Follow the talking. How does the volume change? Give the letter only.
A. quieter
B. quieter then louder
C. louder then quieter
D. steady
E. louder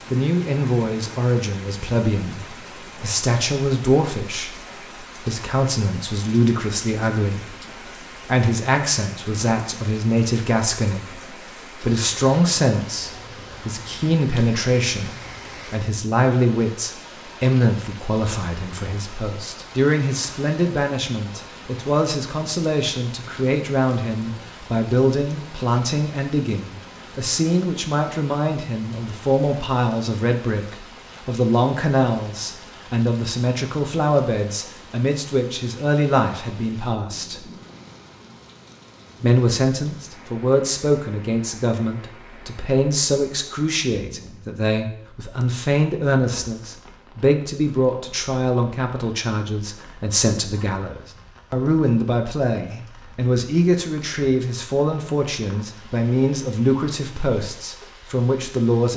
D.